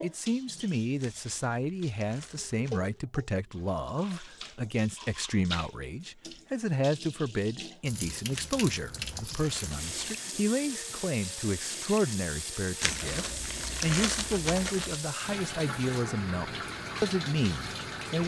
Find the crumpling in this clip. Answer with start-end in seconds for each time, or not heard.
1.0-3.0, 8.3-10.2, 12.8-15.0.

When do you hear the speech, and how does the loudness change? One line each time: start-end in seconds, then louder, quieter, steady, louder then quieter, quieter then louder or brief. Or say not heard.
0.0-18.2 steady.